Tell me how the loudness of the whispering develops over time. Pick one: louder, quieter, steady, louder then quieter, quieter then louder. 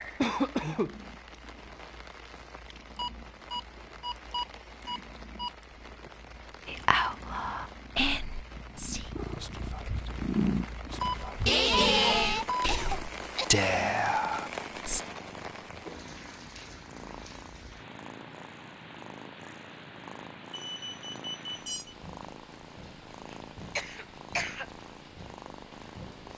quieter then louder.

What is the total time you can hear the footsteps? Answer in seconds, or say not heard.
not heard.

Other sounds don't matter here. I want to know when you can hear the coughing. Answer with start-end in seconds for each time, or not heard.
0.2-0.9, 11.4-13.4, 23.8-24.6.